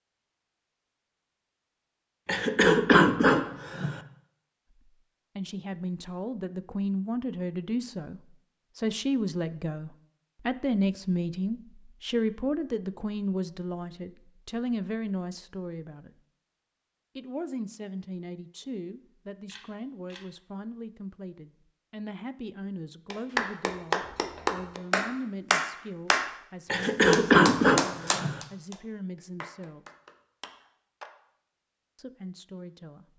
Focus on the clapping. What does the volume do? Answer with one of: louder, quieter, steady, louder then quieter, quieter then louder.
quieter.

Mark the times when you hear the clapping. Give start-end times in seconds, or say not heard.
23.1-31.1.